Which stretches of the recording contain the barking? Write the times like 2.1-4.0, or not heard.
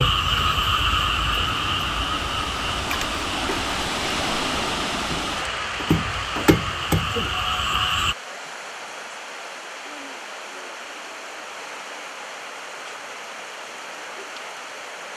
not heard.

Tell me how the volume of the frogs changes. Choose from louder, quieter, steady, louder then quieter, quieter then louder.
quieter then louder.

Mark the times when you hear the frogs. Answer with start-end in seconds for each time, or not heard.
0.0-8.2.